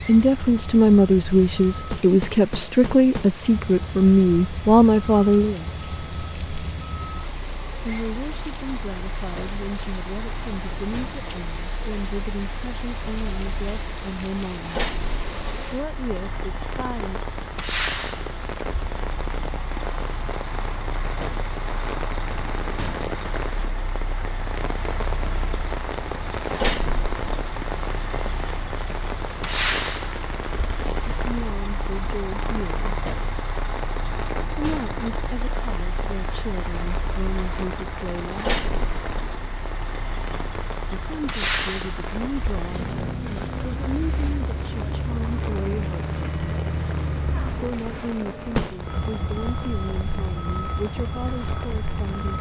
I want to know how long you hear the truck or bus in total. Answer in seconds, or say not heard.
52 s.